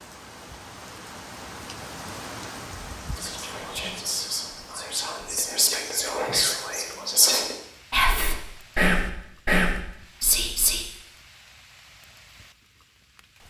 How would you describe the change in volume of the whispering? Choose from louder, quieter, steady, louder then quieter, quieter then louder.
louder.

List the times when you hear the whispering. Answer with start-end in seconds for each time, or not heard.
3.0-10.8.